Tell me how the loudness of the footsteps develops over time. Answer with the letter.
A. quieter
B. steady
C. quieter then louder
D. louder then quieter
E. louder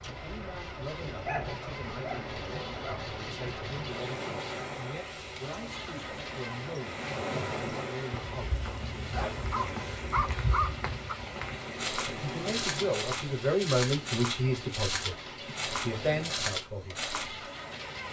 E.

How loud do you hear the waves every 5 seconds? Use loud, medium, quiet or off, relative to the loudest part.
loud, loud, loud, medium.